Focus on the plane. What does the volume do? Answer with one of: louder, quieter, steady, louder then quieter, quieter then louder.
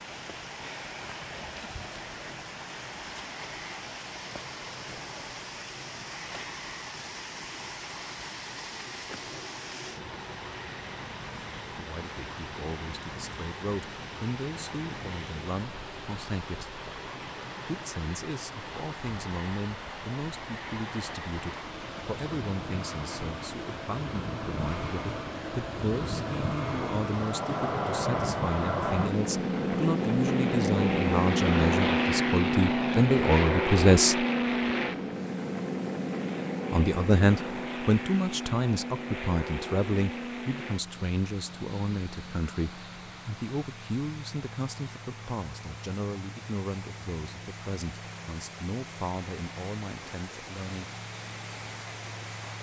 louder then quieter.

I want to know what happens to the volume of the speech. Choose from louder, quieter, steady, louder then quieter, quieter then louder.
louder then quieter.